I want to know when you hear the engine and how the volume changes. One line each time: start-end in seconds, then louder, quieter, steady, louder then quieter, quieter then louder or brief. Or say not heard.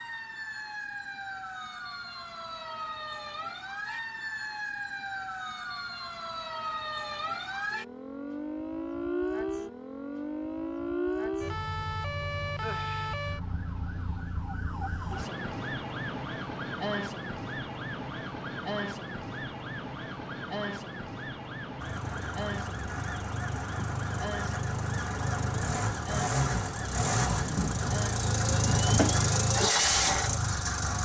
21.8-30.9 louder.